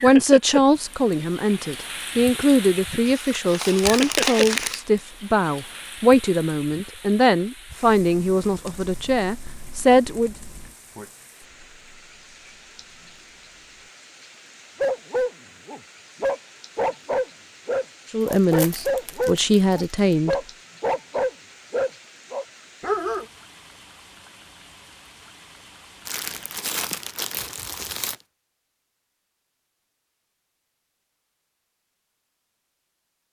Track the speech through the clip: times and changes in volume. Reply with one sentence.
You can hear the speech from 0.0 to 10.3 s, at a steady volume; and briefly from 18.1 to 20.4 s.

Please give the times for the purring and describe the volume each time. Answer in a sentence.
The purring can't be heard in this clip.